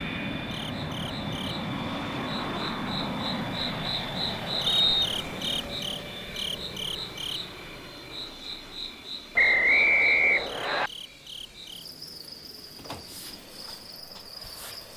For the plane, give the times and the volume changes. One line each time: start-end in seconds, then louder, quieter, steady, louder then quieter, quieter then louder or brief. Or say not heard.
0.0-14.9 quieter.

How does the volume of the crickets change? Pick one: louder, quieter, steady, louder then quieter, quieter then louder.
louder then quieter.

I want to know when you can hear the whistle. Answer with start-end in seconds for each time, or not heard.
4.7-5.6, 9.3-10.9.